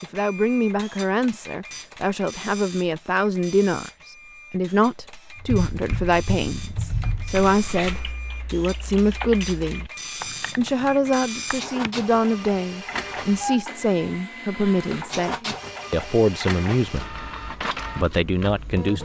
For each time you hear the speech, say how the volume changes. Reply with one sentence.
You can hear the speech from 0.0 to 9.8 s, at a steady volume; from 10.6 to 17.1 s, at a steady volume; and briefly from 17.9 to 19.0 s.